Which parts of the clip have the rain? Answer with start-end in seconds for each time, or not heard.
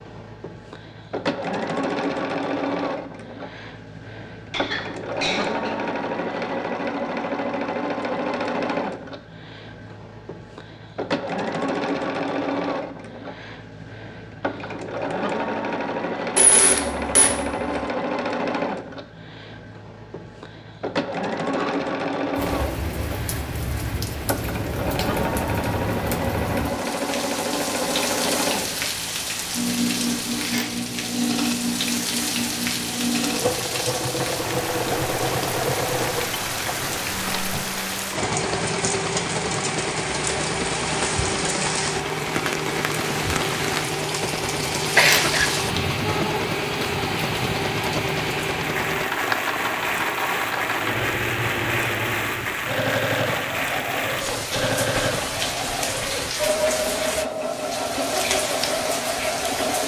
22.4-59.8.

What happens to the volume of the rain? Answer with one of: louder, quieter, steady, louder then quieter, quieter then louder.
steady.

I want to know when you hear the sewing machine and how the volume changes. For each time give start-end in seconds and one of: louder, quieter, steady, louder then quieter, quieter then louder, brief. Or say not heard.
0.0-59.8 steady.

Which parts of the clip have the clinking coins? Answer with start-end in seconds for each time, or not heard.
16.4-17.8, 30.4-30.9, 44.9-45.8.